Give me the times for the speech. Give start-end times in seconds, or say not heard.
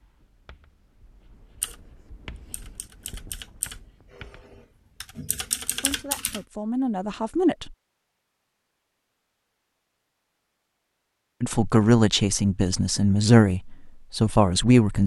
5.8-7.8, 11.4-15.0.